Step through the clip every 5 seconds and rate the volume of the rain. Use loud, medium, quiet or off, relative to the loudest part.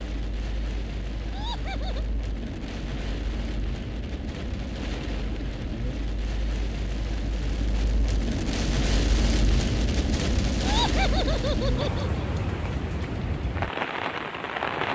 medium, loud, loud.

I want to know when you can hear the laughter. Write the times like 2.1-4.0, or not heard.
1.3-2.0, 10.6-12.2.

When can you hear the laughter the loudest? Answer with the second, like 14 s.
11 s.